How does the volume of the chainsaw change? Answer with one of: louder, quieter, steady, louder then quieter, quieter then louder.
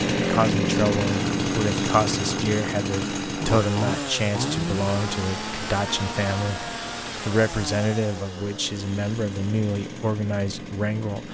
quieter.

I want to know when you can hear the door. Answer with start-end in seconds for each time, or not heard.
not heard.